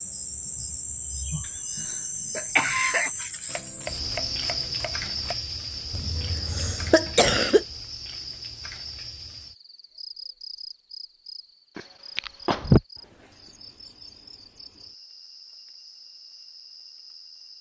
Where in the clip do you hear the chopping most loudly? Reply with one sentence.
The loudest moment of the chopping is at 4 seconds.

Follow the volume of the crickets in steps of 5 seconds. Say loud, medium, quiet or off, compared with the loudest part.
loud, medium, quiet, quiet.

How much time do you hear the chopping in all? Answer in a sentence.
You can hear the chopping for 2 seconds altogether.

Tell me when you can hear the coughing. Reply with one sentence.
You can hear the coughing from 1.8 to 3.1 s, from 5.9 to 7.7 s and from 11.8 to 12.8 s.